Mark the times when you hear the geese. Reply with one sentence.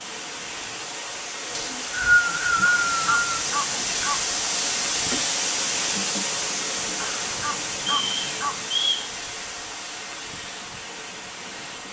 The geese can be heard from 2.6 to 4.2 s and from 7.0 to 8.6 s.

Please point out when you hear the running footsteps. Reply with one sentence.
You can't hear the running footsteps here.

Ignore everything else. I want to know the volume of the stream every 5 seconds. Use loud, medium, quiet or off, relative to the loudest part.
loud, loud, medium.